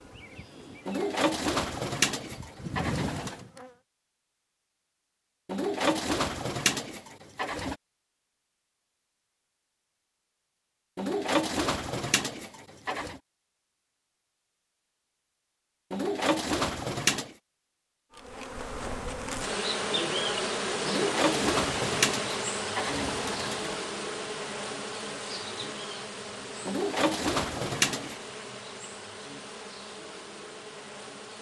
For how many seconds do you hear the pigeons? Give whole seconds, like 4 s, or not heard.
13 s.